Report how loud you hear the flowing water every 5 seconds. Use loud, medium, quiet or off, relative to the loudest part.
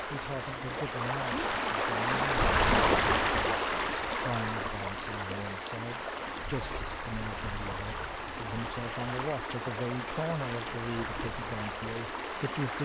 loud, medium, medium.